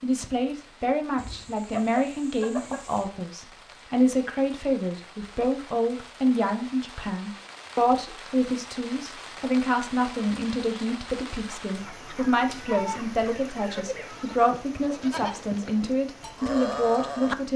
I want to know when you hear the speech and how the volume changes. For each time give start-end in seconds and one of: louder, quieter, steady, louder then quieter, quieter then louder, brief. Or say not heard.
0.0-17.5 steady.